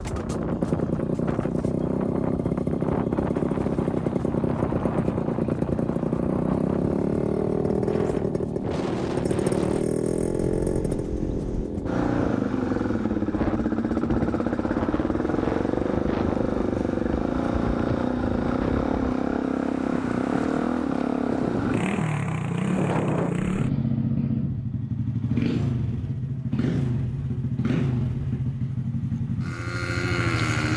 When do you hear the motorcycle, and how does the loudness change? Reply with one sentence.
The motorcycle can be heard from 0.0 to 30.7 s, at a steady volume.